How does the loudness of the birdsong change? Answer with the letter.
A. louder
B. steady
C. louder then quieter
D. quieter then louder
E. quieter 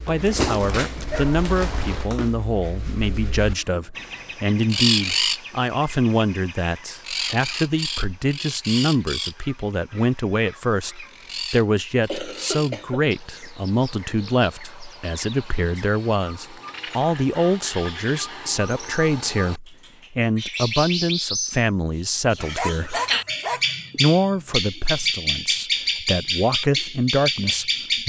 D.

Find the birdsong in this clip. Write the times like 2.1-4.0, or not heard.
0.0-28.0.